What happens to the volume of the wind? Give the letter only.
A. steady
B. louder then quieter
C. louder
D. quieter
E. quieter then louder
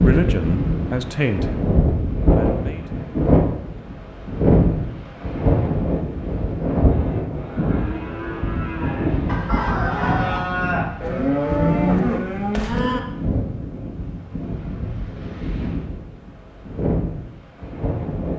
D.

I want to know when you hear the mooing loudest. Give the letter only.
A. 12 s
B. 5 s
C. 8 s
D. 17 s
A.